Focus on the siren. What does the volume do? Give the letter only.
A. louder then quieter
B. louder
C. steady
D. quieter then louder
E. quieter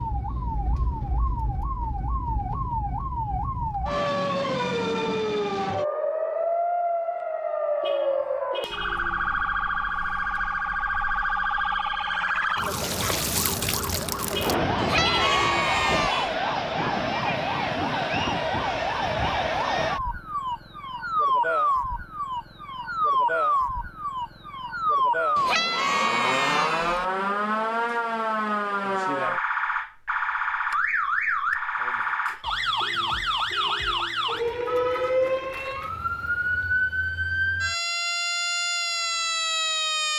C.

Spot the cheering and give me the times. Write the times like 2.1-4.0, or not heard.
14.8-16.4, 25.4-27.1.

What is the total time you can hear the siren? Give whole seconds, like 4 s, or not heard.
40 s.